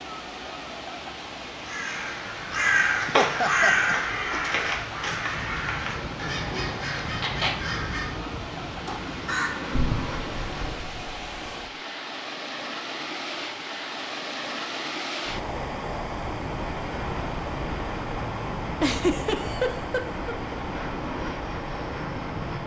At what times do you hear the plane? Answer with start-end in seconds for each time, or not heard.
2.2-10.9, 16.1-22.6.